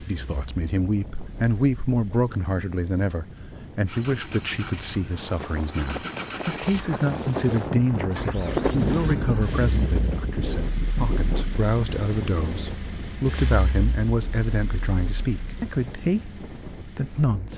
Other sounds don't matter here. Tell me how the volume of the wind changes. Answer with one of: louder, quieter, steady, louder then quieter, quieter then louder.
louder then quieter.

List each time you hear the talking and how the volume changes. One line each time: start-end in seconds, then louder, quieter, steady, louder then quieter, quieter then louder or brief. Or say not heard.
0.1-17.5 steady.